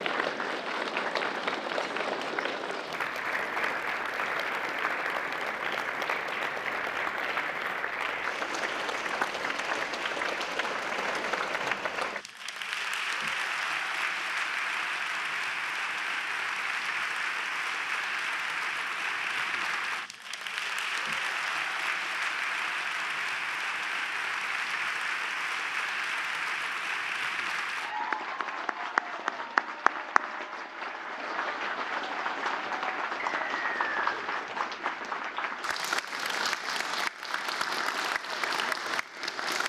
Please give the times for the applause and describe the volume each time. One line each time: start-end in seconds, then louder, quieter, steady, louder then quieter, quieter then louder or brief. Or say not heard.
0.0-39.6 steady.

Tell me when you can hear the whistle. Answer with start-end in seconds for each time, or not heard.
33.2-34.2.